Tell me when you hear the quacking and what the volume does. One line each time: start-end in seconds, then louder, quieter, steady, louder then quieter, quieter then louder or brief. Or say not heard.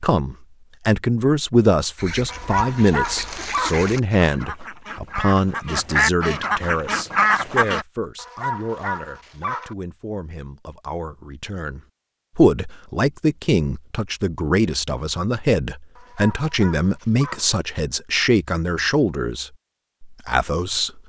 1.9-7.8 louder.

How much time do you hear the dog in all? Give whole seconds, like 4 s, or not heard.
5 s.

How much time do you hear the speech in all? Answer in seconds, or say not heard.
21 s.